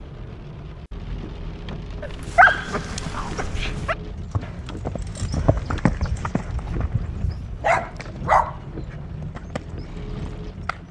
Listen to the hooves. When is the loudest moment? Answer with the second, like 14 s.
6 s.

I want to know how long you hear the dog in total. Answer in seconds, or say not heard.
4 s.